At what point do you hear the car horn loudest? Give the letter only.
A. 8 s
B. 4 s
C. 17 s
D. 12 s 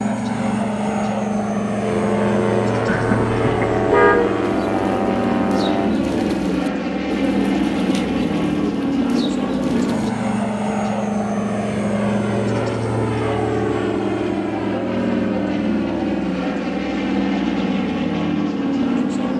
B.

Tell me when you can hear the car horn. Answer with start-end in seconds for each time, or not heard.
2.9-4.2.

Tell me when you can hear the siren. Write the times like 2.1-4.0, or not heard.
1.8-6.0.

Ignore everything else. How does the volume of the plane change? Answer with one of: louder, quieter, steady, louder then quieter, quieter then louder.
steady.